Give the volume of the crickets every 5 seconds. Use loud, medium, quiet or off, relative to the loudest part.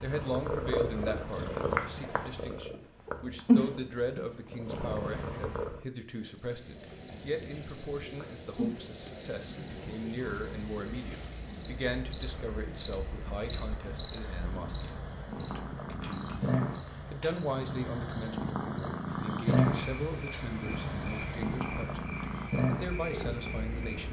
off, loud, loud, quiet, quiet.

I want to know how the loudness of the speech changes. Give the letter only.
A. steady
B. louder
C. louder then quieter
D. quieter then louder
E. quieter
A.